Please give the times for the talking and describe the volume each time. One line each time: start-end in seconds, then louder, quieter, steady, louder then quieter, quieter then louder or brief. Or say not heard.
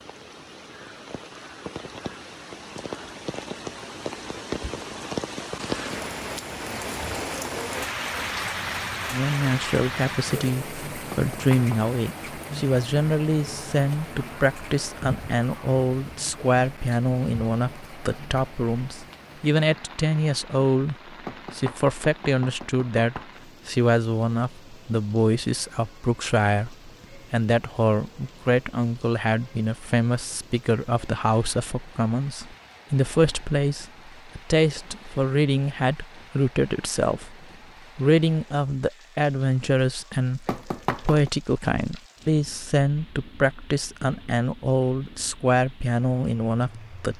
9.1-47.1 steady.